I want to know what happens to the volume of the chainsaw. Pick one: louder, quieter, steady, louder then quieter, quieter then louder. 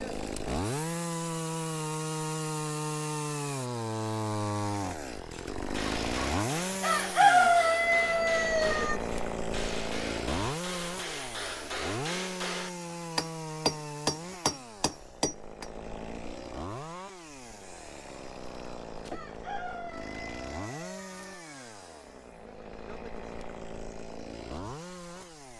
quieter.